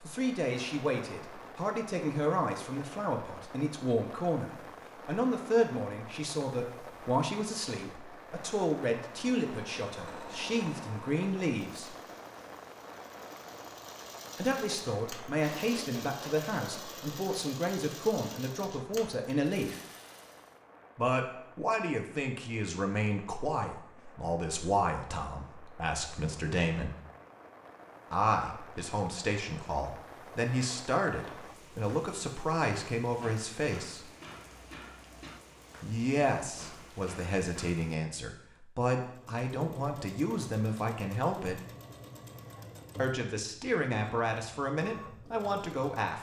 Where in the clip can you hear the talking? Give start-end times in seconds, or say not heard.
0.0-11.9, 14.3-19.8, 20.9-26.9, 28.1-34.1, 35.8-41.6, 43.0-46.1.